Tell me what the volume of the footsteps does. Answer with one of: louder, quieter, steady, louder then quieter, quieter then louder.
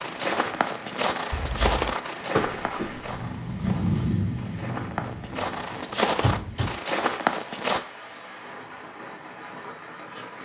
quieter then louder.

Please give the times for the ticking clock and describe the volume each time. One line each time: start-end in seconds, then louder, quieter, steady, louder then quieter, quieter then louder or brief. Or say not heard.
not heard.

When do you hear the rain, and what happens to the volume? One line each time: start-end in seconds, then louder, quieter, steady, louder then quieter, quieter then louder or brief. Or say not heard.
0.0-10.4 louder then quieter.